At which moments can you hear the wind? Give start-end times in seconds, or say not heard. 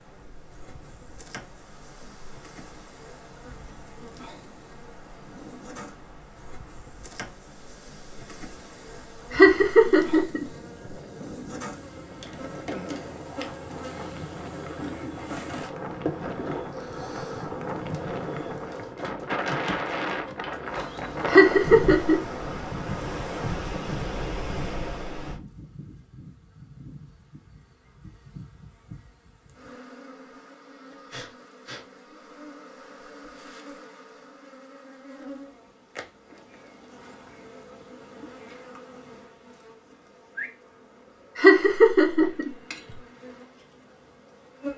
0.0-25.4.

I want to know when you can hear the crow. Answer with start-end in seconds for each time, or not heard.
not heard.